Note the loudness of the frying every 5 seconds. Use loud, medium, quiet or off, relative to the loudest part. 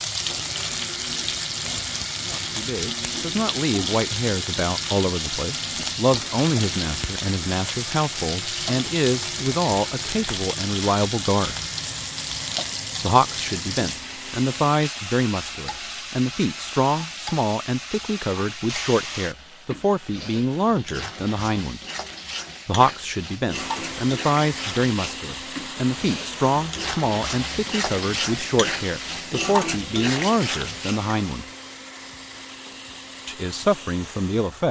loud, loud, loud, medium, medium, loud, loud.